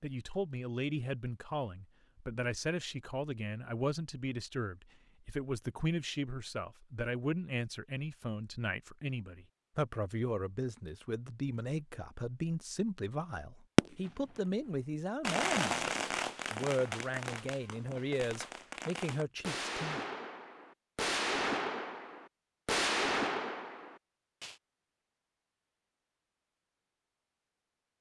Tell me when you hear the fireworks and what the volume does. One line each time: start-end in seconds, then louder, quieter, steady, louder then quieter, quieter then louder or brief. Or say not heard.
13.8-14.4 brief
15.2-24.6 quieter then louder.